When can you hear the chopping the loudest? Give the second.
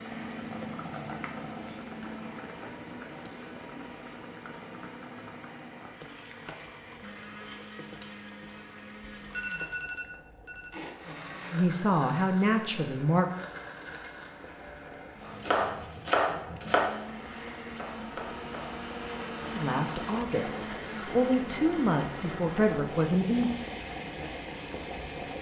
16 s.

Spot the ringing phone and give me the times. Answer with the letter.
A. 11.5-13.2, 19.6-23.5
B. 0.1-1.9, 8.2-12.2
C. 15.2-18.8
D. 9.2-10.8
D.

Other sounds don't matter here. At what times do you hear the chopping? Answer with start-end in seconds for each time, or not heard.
15.2-18.8.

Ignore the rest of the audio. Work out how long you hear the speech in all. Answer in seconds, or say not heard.
6 s.